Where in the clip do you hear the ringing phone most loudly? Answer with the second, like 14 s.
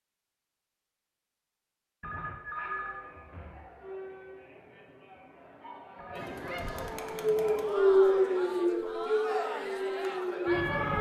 3 s.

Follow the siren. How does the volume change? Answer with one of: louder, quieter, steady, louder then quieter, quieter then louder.
louder then quieter.